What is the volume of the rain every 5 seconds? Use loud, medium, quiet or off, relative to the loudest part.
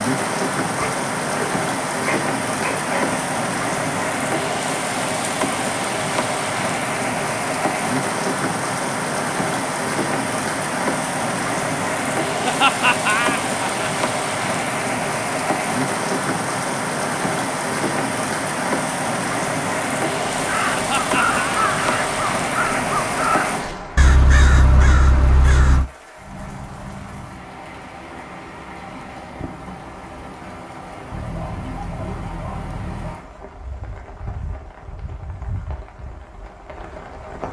loud, loud, loud, loud, loud, quiet, quiet, quiet.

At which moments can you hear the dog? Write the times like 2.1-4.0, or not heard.
0.8-3.3, 31.1-33.1.